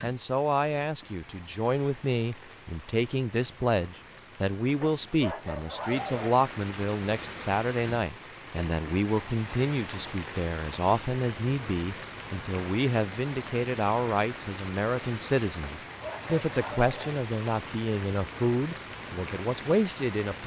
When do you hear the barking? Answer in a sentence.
You can hear the barking from 4.8 to 6.2 s and from 15.6 to 17.2 s.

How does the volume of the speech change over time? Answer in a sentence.
The volume of the speech stays about the same.